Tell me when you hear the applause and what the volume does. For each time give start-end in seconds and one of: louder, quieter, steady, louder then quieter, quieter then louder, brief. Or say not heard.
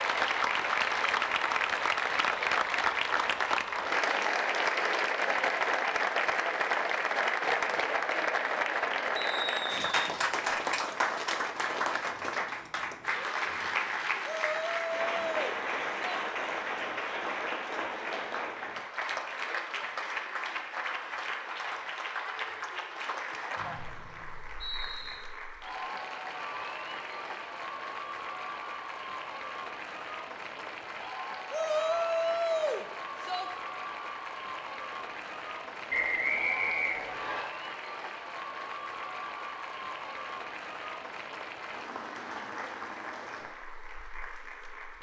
0.0-44.9 quieter.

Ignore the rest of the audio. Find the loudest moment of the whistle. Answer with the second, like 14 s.
36 s.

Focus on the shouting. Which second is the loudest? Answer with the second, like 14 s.
32 s.